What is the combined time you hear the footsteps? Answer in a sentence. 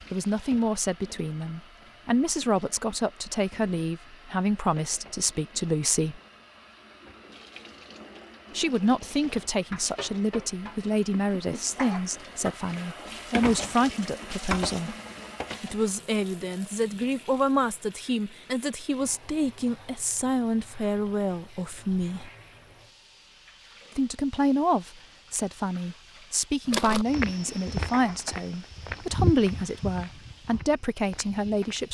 You can hear the footsteps for 5 seconds altogether.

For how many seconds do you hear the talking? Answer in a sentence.
The talking can be heard for 27 seconds in total.